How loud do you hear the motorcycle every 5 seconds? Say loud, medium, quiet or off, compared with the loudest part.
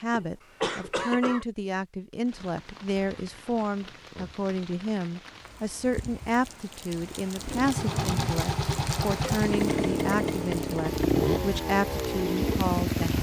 off, loud, loud.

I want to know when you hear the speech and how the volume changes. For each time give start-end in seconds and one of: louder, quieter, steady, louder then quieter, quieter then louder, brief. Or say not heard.
0.0-13.1 steady.